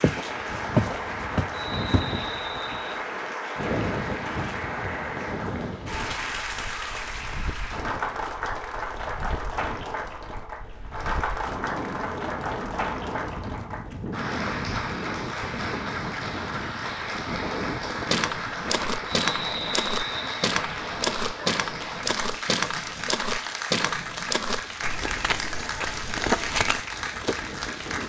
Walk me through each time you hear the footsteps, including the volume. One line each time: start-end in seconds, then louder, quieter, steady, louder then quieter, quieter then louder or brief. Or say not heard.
0.0-2.0 brief
18.1-27.4 steady.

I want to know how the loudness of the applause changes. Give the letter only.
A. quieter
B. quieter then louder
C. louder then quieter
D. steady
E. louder
D.